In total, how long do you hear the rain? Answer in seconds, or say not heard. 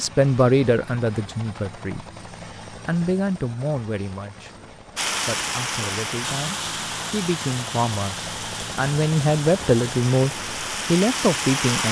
7 s.